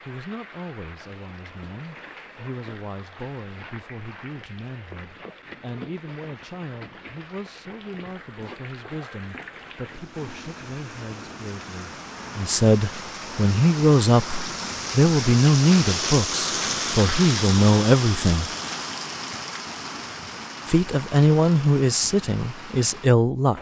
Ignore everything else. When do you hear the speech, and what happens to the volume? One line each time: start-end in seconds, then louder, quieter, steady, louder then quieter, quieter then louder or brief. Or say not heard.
0.1-18.5 louder
20.6-23.5 brief.